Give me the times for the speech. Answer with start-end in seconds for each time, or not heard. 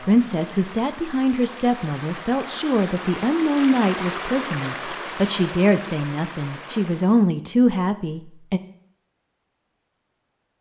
0.0-8.6.